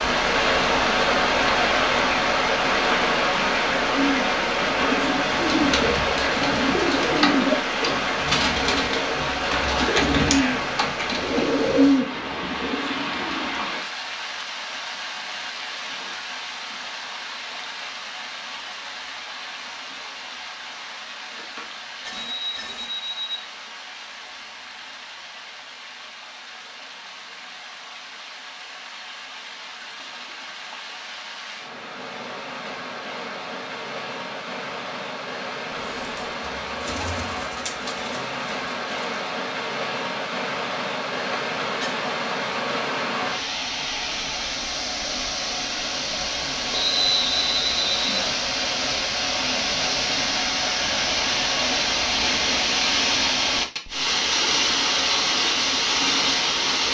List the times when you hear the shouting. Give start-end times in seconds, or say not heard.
not heard.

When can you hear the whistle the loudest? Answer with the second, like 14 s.
47 s.